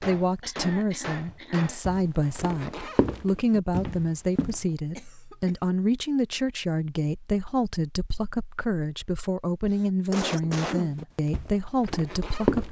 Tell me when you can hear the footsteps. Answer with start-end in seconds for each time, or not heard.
0.1-4.5, 10.4-12.6.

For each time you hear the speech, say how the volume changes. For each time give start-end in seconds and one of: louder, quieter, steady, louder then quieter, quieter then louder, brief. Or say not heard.
0.0-12.6 steady.